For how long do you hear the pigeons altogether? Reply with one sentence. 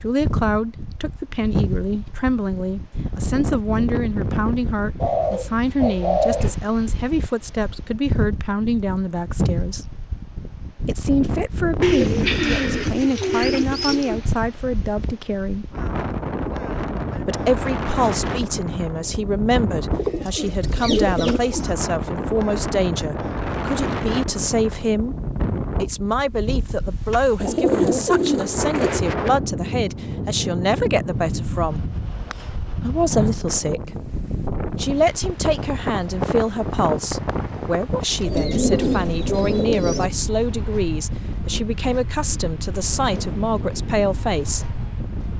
You can hear the pigeons for 9 seconds altogether.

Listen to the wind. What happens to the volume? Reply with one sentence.
The volume of the wind stays about the same.